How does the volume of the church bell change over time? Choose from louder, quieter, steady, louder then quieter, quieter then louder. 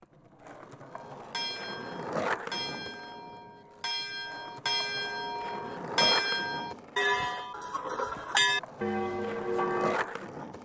louder.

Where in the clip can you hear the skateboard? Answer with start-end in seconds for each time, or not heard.
0.0-10.6.